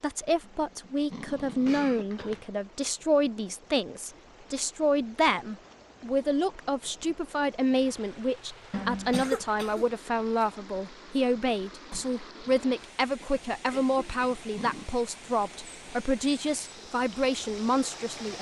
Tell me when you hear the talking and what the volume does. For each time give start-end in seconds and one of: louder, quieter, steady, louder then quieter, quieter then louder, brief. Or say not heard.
0.0-18.3 steady.